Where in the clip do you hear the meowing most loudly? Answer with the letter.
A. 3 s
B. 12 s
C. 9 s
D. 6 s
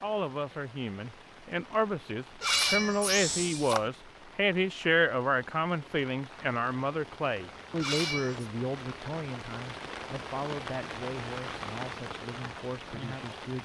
A.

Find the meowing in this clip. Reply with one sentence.
The meowing can be heard from 2.4 to 3.9 s and from 7.8 to 8.5 s.